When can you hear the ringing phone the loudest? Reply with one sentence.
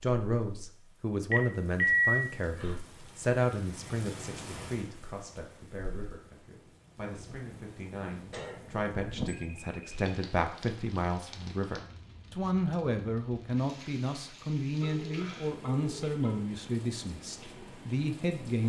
The volume of the ringing phone peaks at 2 seconds.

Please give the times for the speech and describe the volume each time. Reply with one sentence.
The speech can be heard from 0.0 to 18.6 s, getting quieter then louder.